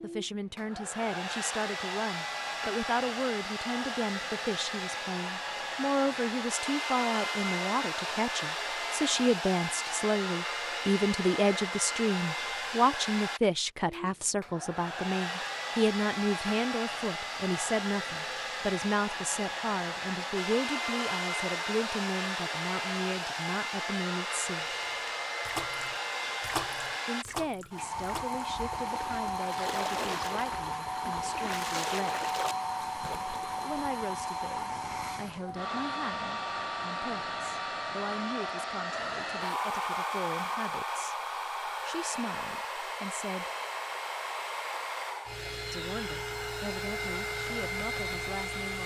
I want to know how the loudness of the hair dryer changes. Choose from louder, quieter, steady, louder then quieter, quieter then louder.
steady.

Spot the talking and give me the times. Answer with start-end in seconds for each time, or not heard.
0.0-24.6, 27.1-32.2, 33.6-43.5, 45.7-48.8.